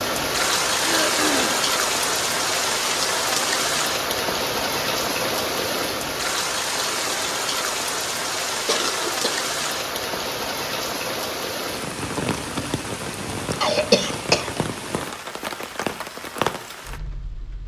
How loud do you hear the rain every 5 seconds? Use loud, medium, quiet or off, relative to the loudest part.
loud, loud, medium, medium.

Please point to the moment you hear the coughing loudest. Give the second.
14 s.